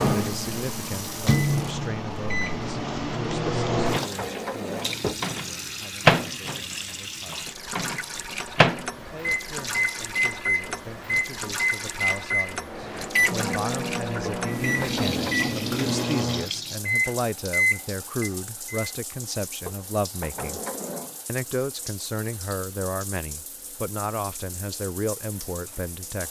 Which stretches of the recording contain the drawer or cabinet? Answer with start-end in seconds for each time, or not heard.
3.5-5.2, 14.2-15.4, 19.6-21.1.